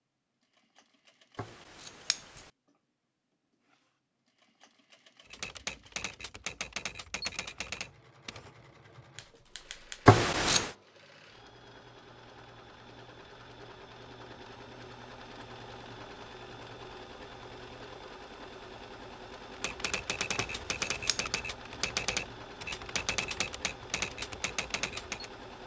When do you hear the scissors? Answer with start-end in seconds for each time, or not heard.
1.4-2.4, 10.1-10.8, 20.4-21.2.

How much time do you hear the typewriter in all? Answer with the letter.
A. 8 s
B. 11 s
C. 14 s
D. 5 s
B.